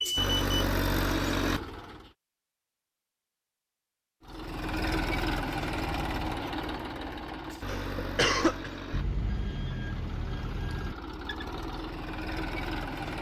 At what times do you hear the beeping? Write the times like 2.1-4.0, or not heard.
0.0-0.6, 8.9-10.9.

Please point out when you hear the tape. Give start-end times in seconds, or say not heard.
not heard.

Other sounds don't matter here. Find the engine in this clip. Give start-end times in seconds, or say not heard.
0.0-2.1, 4.2-13.1.